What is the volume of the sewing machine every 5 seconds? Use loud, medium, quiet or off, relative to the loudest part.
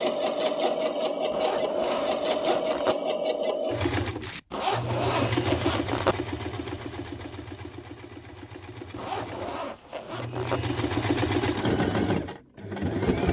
loud, medium, loud.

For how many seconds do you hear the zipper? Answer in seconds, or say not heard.
5 s.